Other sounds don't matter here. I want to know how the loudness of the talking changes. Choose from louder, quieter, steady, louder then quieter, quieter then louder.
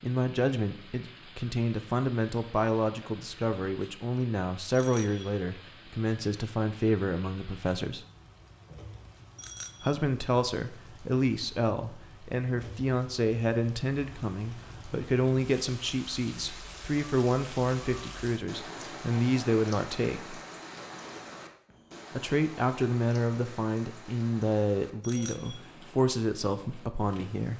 steady.